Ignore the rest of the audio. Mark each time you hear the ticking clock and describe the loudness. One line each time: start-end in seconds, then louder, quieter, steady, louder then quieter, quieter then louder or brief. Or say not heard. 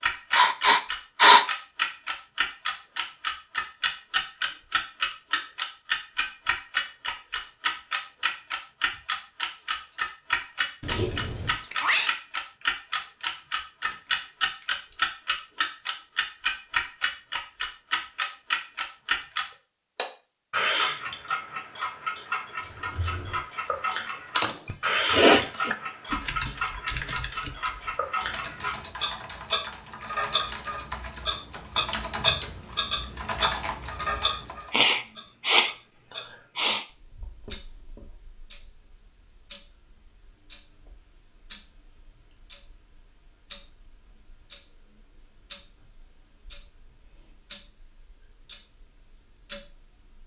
0.0-50.2 quieter.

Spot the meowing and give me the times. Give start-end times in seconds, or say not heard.
10.8-12.2.